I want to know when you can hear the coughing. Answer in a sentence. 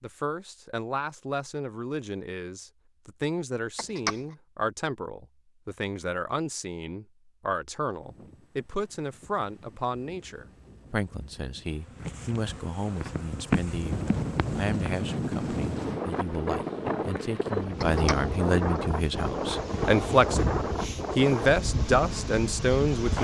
You can hear the coughing from 3.8 to 4.2 s and from 17.8 to 18.8 s.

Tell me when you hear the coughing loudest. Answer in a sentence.
The volume of the coughing peaks at 4 seconds.